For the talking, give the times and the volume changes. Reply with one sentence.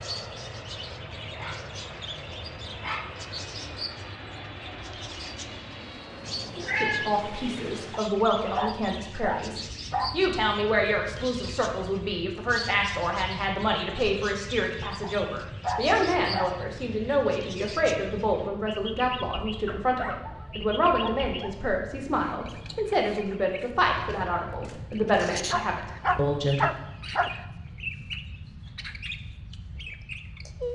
You can hear the talking from 6.8 to 26.7 s, at a steady volume.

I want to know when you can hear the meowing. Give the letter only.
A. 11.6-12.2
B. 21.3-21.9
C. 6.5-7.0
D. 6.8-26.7
C.